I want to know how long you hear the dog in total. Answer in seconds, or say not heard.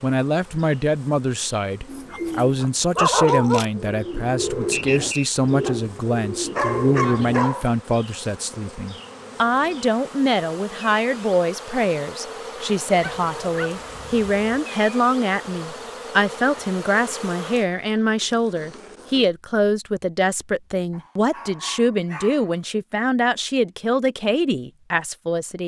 6 s.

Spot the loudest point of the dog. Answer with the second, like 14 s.
3 s.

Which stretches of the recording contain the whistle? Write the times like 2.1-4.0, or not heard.
4.7-5.3.